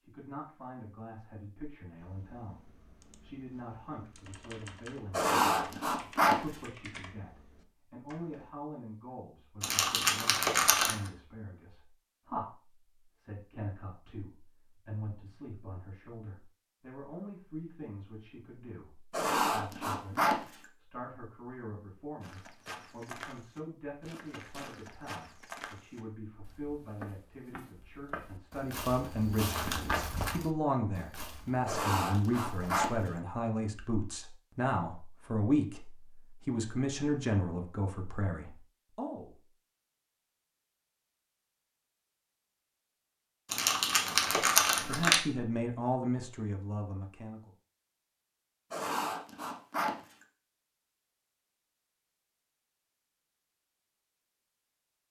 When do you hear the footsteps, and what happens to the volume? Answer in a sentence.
The footsteps can be heard from 22.2 to 32.9 s, getting louder then quieter.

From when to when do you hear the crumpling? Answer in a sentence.
The crumpling can be heard from 9.6 to 10.9 s and from 43.5 to 45.2 s.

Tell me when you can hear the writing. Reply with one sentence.
The writing can be heard from 5.1 to 6.3 s, from 19.1 to 20.6 s, from 31.6 to 33.1 s and from 48.7 to 50.1 s.